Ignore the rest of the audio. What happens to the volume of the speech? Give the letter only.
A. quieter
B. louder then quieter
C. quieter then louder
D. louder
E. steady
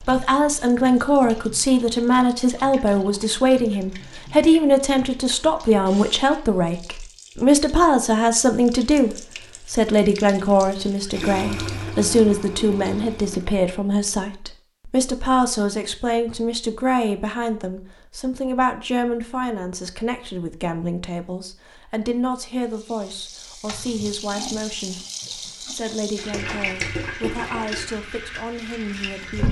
A.